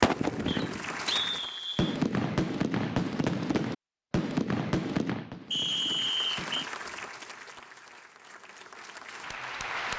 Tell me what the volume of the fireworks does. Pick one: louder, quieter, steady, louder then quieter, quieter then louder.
louder then quieter.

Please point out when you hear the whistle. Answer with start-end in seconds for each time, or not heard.
0.5-2.0, 5.5-6.5.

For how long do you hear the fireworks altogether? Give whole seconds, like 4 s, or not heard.
7 s.